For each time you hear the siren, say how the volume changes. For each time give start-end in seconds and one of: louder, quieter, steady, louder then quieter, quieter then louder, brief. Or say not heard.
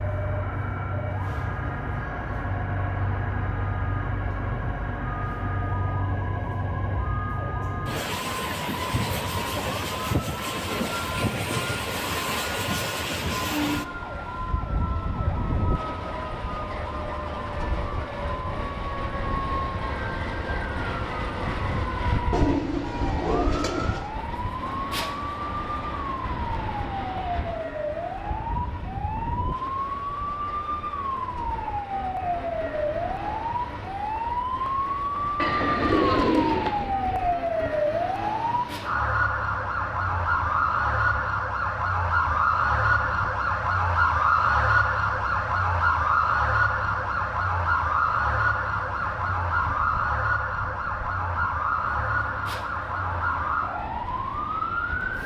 0.0-55.2 louder.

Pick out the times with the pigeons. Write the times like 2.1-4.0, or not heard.
22.3-24.1, 35.4-37.2.